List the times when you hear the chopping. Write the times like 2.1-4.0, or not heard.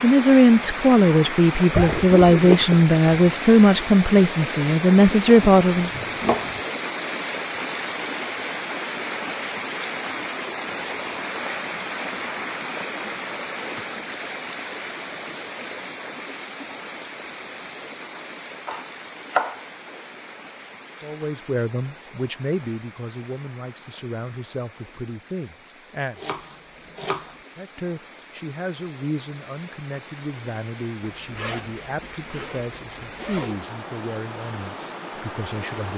5.2-6.6, 18.1-20.1, 26.1-27.4.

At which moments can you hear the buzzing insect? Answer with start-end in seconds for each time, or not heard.
not heard.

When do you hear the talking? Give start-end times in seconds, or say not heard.
0.0-5.9, 21.0-26.2, 27.6-35.9.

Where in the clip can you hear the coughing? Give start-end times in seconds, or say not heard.
not heard.